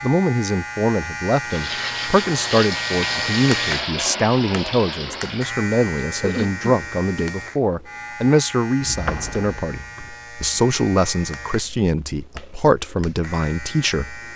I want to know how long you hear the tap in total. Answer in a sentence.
The tap can be heard for 4 seconds in total.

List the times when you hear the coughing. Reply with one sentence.
The coughing can be heard from 6.2 to 7.2 s.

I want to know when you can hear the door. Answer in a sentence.
You can hear the door from 8.8 to 10.1 s.